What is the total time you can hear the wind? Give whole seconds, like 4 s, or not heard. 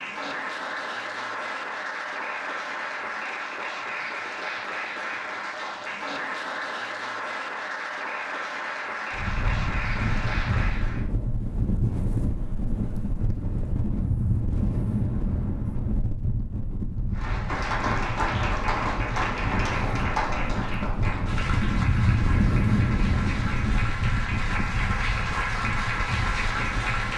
18 s.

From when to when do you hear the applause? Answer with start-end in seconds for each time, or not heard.
0.0-11.1, 17.1-27.1.